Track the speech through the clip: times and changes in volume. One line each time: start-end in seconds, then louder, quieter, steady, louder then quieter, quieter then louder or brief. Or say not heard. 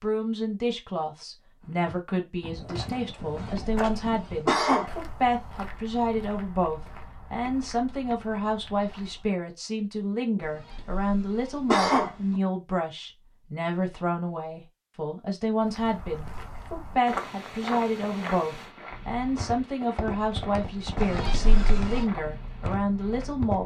0.0-23.6 steady.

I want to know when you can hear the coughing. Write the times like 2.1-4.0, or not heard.
3.2-4.8, 10.4-12.4, 20.9-22.1.